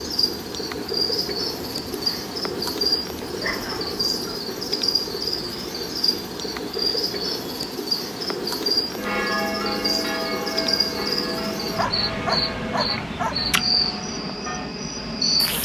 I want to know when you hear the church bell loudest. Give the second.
9 s.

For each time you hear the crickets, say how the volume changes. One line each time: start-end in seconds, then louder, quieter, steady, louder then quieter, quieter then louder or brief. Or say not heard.
0.0-15.6 steady.